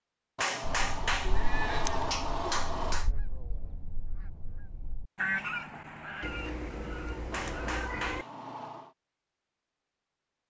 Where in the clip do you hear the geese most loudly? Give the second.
5 s.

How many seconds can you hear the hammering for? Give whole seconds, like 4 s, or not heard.
4 s.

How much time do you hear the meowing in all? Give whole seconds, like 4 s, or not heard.
3 s.